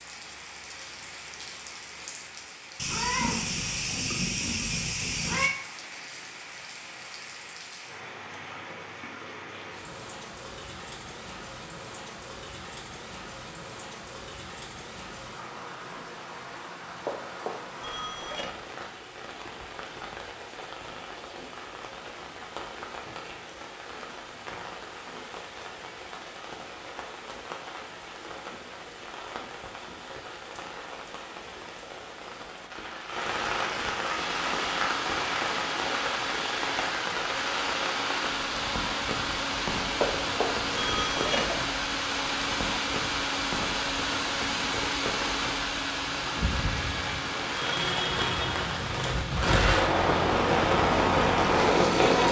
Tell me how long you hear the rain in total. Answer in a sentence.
The rain can be heard for 52 seconds in total.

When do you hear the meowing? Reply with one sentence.
The meowing can be heard from 2.8 to 5.5 s.